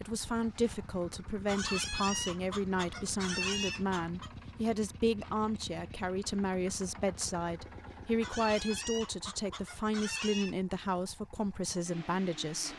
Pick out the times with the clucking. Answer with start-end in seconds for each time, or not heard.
1.4-4.3, 8.2-10.6.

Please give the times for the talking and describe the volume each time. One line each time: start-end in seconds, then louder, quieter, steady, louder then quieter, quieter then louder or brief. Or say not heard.
0.0-12.7 steady.